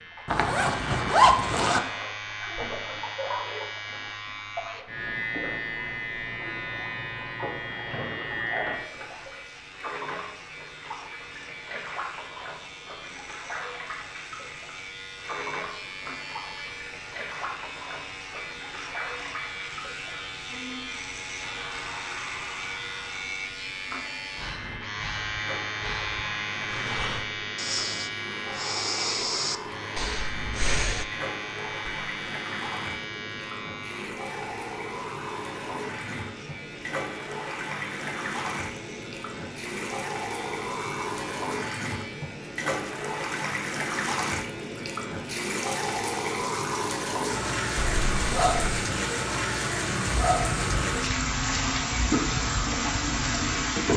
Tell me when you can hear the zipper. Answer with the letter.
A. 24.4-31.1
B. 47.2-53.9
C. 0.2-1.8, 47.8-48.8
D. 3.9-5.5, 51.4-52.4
C.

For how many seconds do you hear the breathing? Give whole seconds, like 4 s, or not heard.
7 s.